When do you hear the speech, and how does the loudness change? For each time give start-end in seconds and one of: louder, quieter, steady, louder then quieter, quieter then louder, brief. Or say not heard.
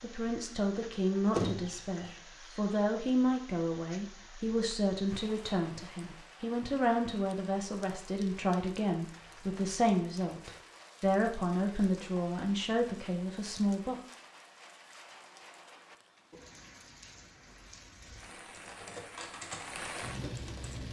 0.0-13.9 steady.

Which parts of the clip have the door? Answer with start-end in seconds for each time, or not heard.
1.3-2.1.